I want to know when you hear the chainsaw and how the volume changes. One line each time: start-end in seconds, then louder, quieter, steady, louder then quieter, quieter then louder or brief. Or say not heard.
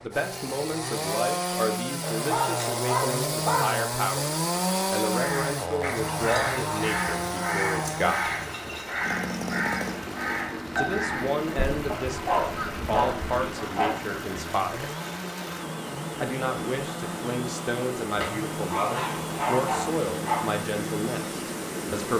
0.0-21.9 quieter.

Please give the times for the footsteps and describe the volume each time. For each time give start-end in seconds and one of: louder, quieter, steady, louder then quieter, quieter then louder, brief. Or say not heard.
not heard.